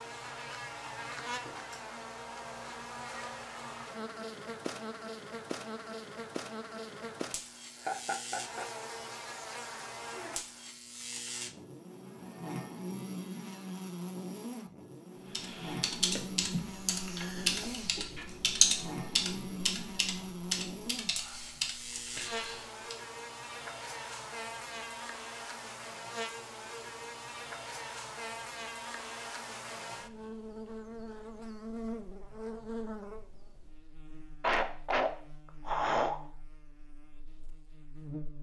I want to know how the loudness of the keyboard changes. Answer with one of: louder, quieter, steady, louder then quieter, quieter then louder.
louder then quieter.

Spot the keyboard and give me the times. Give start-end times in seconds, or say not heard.
15.3-22.9.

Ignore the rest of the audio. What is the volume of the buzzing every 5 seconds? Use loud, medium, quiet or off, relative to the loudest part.
loud, loud, loud, loud, loud, loud, loud, medium.